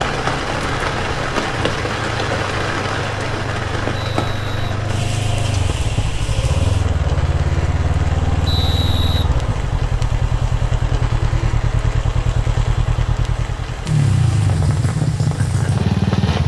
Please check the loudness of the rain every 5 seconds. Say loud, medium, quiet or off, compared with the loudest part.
loud, medium, medium, medium.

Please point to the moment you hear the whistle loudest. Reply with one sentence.
The volume of the whistle peaks at 9 seconds.